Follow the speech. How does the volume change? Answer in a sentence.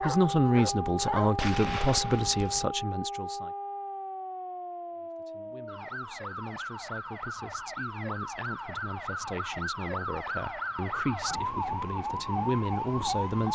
The loudness of the speech goes down, then up.